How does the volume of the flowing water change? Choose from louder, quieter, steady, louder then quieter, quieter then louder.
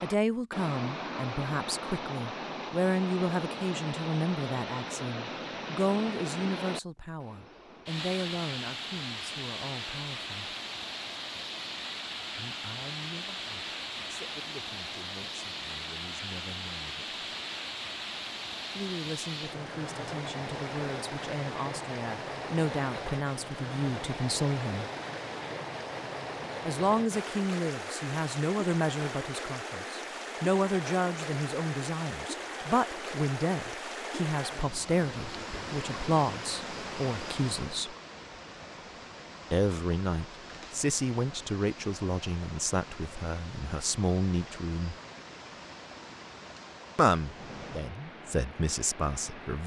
quieter.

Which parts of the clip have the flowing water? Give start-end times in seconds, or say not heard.
0.0-49.6.